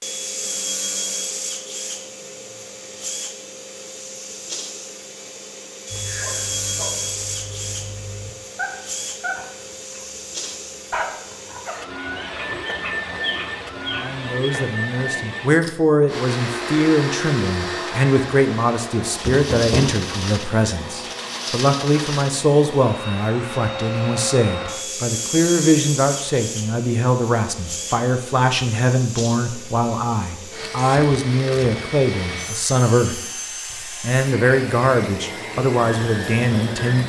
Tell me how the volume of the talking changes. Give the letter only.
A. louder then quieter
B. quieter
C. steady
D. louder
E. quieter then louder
C.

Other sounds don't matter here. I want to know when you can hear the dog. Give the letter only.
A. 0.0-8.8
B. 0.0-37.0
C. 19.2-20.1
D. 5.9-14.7
D.